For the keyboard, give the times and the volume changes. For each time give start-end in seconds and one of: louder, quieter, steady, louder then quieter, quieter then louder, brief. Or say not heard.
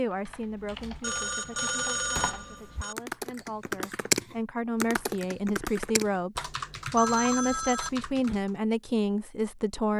0.1-8.6 louder then quieter.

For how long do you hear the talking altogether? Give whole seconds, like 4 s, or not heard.
10 s.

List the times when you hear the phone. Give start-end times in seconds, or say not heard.
1.0-3.0, 7.0-8.4.